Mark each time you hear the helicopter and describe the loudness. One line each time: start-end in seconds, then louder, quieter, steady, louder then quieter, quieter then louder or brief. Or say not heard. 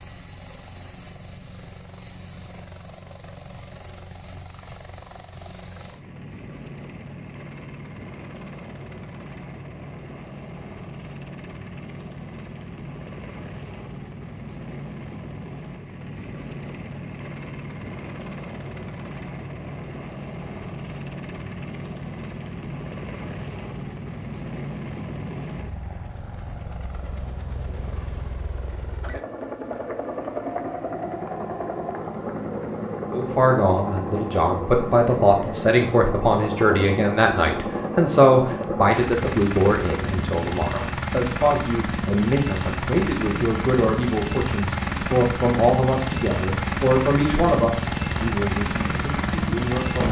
0.0-50.0 louder.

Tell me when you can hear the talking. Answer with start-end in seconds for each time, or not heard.
33.1-50.0.